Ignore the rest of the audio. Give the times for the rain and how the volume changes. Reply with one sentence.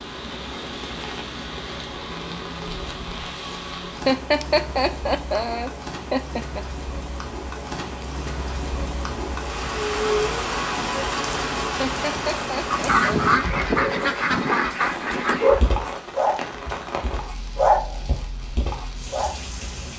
The rain can be heard from 0.0 to 19.9 s, getting louder then quieter.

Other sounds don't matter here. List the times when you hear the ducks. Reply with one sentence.
You can hear the ducks from 12.7 to 15.6 s.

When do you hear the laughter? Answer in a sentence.
The laughter can be heard from 4.0 to 6.6 s and from 11.8 to 13.1 s.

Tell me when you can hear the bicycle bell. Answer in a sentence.
The bicycle bell can't be heard in this clip.